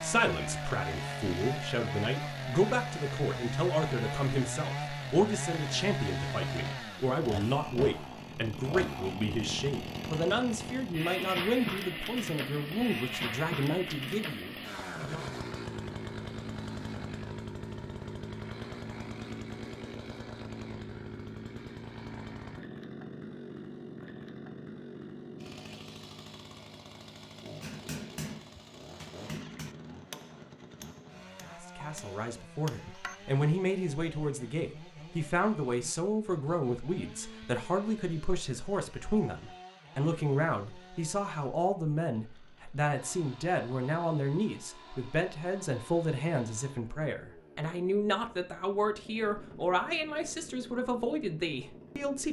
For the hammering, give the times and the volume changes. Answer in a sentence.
The hammering can be heard from 27.6 to 33.2 s, getting quieter then louder.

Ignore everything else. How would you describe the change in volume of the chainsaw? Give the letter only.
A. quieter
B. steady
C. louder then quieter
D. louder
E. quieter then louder
A.